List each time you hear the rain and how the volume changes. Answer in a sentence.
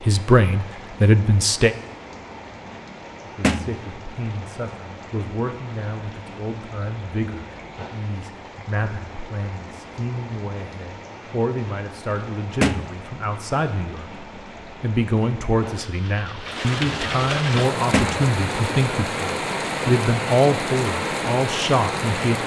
The rain can be heard from 0.0 to 22.4 s, getting louder.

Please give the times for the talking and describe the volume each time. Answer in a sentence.
The talking can be heard briefly from 0.0 to 1.8 s; and from 3.2 to 22.4 s, getting louder.